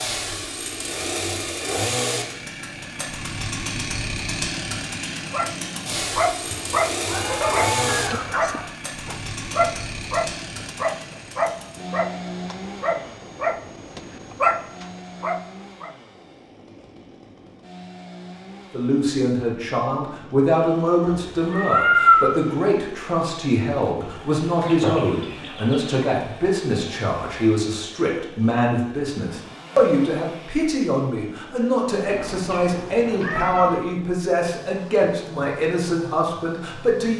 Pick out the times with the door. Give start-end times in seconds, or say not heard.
not heard.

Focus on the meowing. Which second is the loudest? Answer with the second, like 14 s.
22 s.